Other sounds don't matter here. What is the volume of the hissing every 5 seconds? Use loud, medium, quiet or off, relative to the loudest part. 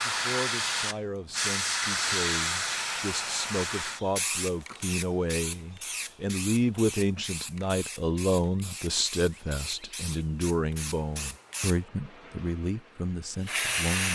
loud, medium, medium.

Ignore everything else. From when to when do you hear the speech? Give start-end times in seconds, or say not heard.
0.1-14.1.